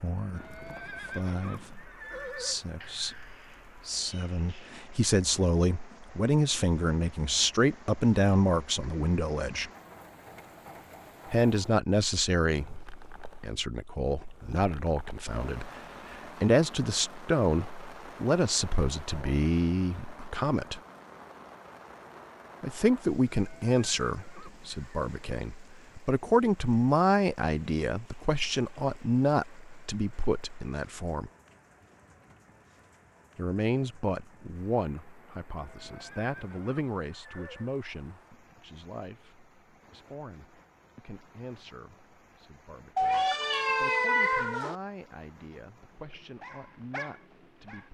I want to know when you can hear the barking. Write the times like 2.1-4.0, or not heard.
46.4-47.8.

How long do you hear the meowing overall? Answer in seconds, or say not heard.
4 s.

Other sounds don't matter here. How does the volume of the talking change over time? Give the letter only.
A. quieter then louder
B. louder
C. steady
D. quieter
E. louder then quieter
D.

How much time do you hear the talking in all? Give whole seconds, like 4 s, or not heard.
42 s.